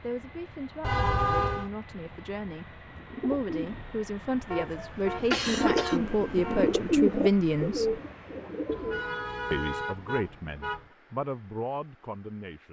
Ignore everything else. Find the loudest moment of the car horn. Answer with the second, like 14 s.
1 s.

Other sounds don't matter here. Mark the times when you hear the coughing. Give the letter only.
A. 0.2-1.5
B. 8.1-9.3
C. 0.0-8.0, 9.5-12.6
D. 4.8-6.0
D.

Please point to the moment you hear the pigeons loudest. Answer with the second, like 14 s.
7 s.